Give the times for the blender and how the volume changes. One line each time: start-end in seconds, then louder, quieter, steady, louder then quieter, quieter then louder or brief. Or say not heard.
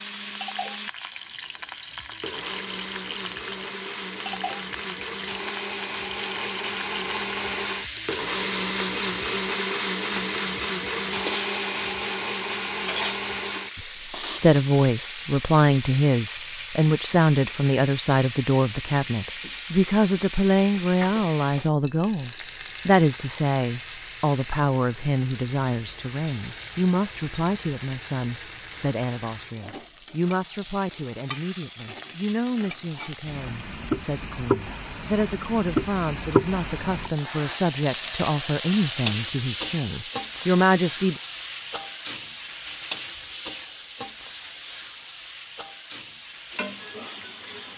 0.0-14.4 louder.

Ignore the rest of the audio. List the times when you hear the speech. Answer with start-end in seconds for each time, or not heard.
13.8-41.2.